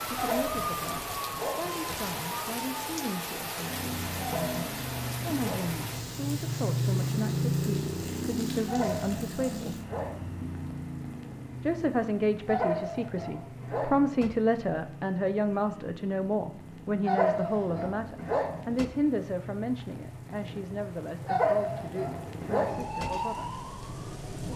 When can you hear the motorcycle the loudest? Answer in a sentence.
The loudest moment of the motorcycle is at 7 seconds.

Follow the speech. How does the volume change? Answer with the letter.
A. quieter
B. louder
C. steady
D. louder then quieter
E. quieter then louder
D.